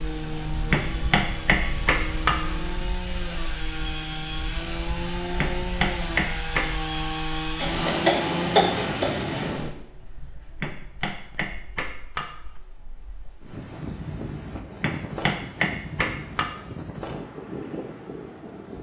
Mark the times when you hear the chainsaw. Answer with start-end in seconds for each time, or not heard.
0.0-9.6.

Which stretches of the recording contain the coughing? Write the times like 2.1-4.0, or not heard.
7.5-9.5.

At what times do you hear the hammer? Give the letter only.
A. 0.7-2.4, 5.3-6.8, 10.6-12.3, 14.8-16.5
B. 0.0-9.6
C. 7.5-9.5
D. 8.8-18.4
A.